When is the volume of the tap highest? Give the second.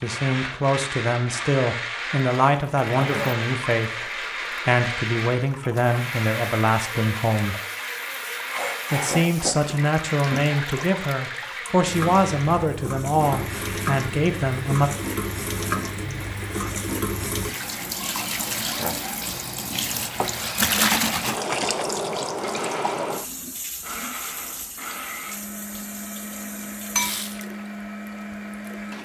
21 s.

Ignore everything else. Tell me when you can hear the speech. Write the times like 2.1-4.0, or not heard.
0.0-7.5, 8.9-14.9.